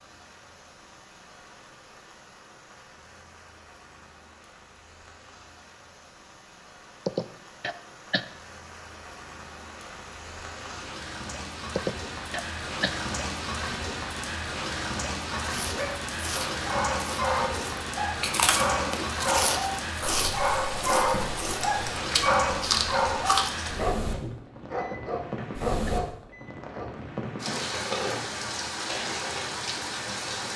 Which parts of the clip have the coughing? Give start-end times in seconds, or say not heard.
7.0-8.2, 11.8-12.9, 24.8-25.9.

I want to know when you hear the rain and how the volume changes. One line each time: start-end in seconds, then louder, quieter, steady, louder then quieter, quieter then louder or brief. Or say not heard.
0.0-30.5 louder.